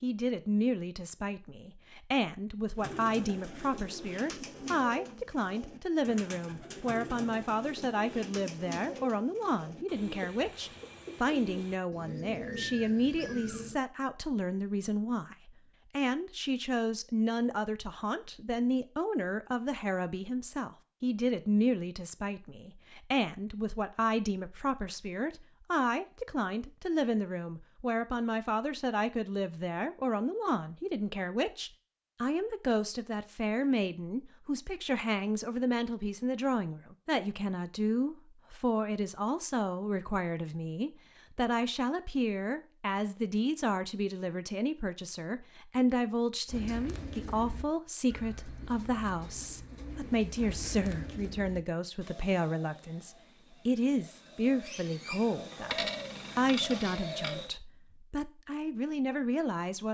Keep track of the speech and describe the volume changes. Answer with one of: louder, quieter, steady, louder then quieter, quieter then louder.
steady.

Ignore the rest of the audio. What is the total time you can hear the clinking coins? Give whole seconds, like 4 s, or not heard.
2 s.